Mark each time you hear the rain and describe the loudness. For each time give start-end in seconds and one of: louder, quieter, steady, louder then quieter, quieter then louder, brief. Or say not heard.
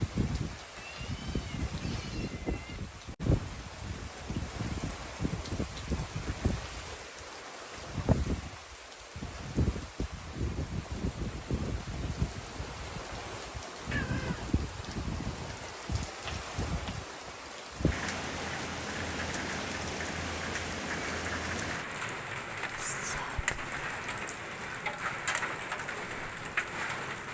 0.0-27.2 steady.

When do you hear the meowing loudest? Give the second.
14 s.